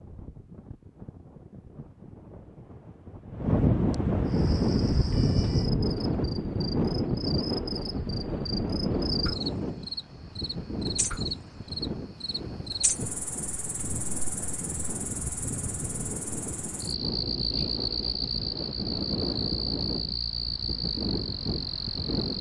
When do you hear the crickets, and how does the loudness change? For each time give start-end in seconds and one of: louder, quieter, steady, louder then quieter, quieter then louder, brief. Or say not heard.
4.2-22.3 louder.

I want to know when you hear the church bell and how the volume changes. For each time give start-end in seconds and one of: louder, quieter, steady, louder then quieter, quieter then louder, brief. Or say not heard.
not heard.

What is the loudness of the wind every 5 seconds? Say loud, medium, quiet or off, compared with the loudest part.
loud, loud, medium, medium, medium.